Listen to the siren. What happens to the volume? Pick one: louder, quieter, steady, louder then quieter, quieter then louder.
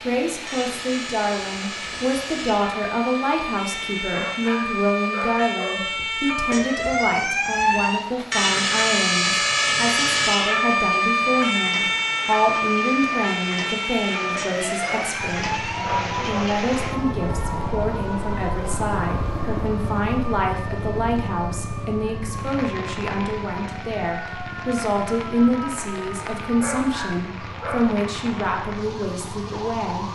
louder then quieter.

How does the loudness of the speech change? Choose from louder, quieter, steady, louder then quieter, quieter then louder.
steady.